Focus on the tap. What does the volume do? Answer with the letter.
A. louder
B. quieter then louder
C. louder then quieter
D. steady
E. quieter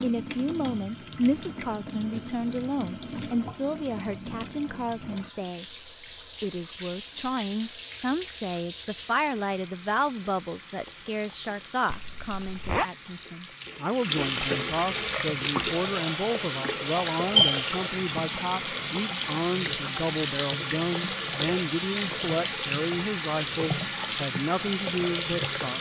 A.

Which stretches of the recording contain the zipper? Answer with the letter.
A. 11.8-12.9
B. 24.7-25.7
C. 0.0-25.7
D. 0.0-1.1
A.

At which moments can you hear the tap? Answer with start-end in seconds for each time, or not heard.
0.0-25.7.